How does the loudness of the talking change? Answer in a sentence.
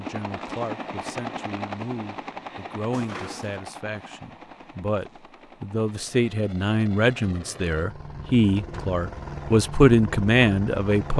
The volume of the talking goes up.